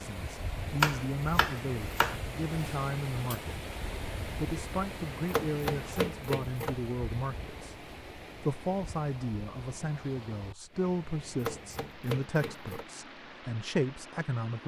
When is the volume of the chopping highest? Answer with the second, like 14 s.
1 s.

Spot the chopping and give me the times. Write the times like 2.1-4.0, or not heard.
0.8-2.1, 5.2-6.8, 11.4-12.8.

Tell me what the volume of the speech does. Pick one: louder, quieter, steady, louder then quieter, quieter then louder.
steady.